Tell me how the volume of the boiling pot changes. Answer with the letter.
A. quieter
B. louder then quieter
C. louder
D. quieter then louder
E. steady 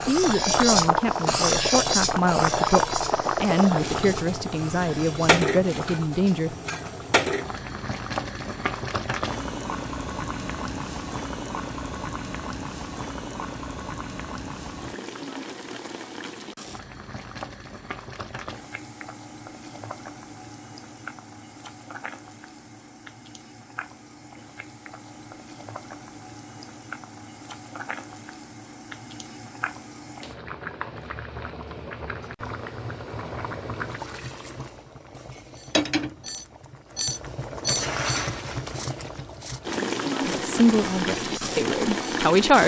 D.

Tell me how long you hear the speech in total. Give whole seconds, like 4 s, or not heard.
9 s.